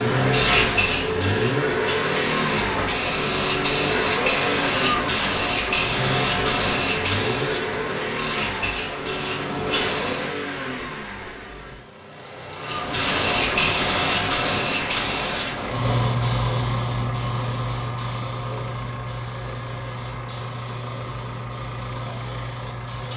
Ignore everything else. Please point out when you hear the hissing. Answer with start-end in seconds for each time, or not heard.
0.0-10.4, 12.6-23.1.